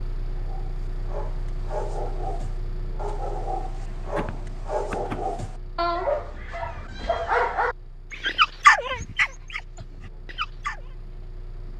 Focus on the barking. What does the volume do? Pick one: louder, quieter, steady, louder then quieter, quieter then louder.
louder.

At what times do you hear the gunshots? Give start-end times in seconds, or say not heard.
4.0-5.5.